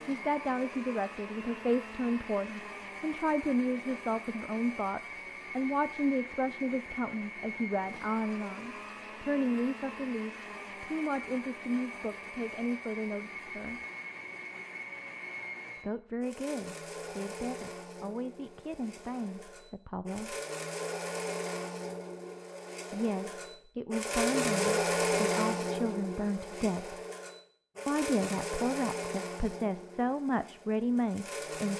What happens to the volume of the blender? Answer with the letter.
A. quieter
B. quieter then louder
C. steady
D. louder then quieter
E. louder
E.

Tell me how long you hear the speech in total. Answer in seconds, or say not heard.
26 s.